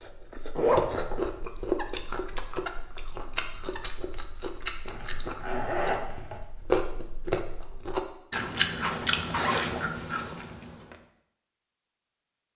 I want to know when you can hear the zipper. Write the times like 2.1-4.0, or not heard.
0.6-1.3, 4.8-6.4, 8.9-9.9.